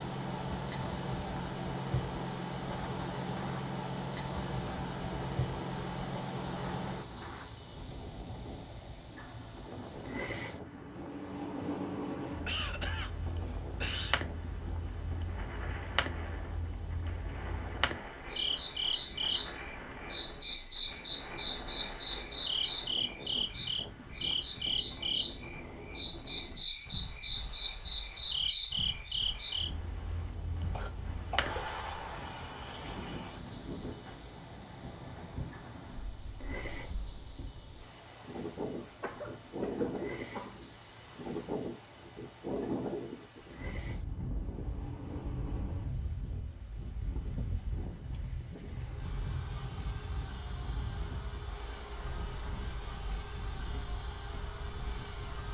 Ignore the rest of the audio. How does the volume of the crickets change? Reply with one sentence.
The loudness of the crickets goes down.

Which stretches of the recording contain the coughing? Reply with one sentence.
You can hear the coughing from 12.2 to 14.2 s, from 30.7 to 31.6 s and from 38.8 to 40.6 s.